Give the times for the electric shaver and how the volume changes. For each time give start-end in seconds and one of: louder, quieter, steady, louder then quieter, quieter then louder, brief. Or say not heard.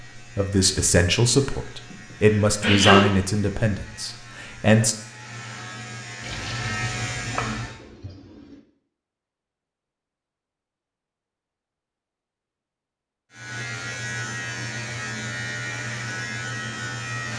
0.0-7.8 louder
13.3-17.3 steady.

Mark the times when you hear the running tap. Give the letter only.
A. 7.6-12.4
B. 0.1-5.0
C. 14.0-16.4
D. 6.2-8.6
D.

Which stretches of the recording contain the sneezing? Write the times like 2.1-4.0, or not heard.
1.9-3.1.